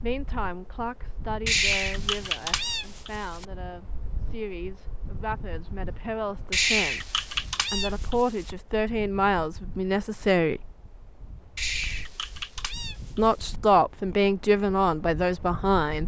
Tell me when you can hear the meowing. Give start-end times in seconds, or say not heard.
1.4-3.5, 6.5-8.6, 11.6-13.6.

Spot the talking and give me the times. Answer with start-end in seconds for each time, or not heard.
0.0-10.8, 13.2-16.0.